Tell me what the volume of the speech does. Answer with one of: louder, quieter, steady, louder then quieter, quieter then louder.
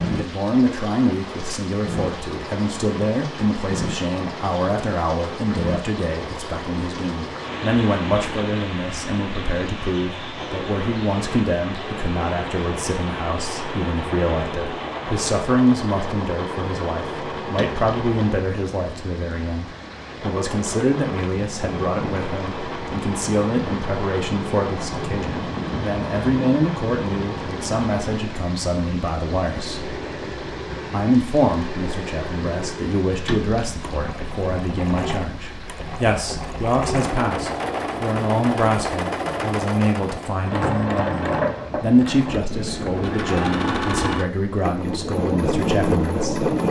steady.